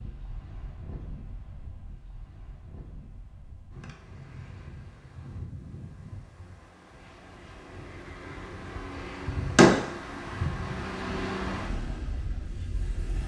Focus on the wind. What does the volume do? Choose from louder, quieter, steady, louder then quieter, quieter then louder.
louder.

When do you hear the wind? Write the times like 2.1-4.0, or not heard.
0.0-13.2.